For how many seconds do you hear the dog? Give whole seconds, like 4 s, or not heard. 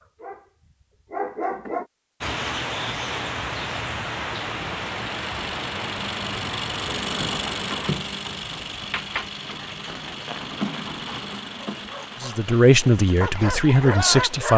5 s.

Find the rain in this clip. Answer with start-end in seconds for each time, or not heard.
2.2-14.5.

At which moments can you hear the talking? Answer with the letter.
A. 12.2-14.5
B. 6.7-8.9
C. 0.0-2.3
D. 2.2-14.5
A.